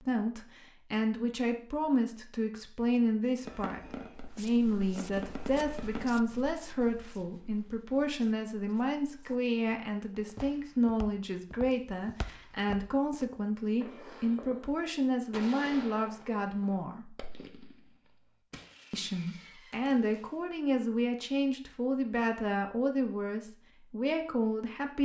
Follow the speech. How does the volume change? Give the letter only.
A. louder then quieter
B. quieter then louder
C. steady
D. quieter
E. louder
C.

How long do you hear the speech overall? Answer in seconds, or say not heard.
23 s.